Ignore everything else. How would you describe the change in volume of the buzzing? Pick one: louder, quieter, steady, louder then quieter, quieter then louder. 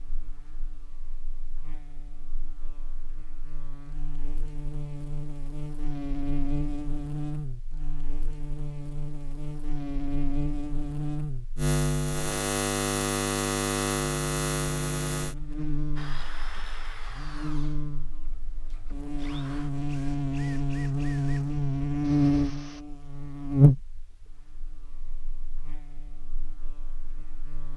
louder.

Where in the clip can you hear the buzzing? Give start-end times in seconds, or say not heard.
0.0-27.7.